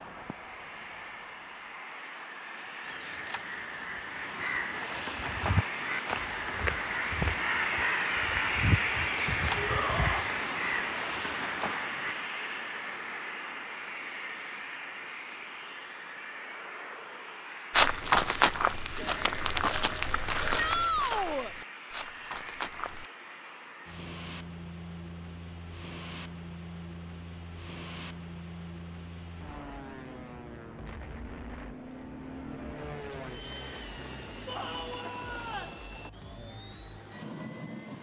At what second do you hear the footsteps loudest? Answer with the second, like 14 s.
18 s.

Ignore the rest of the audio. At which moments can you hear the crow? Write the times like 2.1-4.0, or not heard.
2.8-12.2.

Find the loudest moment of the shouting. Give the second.
21 s.